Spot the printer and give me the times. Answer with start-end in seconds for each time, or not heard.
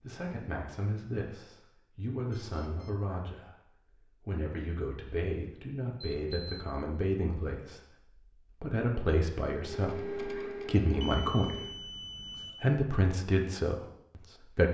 9.6-11.8.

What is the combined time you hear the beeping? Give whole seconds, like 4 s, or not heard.
3 s.